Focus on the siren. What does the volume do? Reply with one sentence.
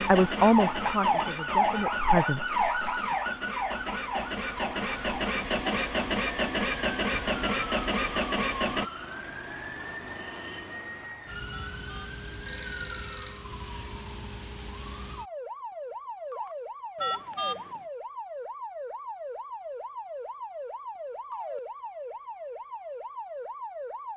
The loudness of the siren goes down.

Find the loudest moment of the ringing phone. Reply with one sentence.
The loudest moment of the ringing phone is at 17 seconds.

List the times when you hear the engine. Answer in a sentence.
The engine can be heard from 0.0 to 8.9 s.